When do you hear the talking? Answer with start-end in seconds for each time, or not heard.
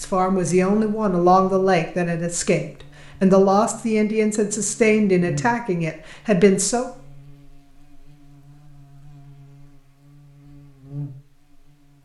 0.0-6.9.